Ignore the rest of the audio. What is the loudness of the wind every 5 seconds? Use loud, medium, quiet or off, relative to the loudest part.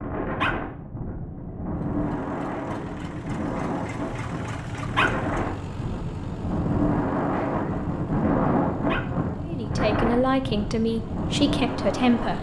medium, loud, loud.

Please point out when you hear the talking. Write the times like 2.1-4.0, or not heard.
9.4-12.3.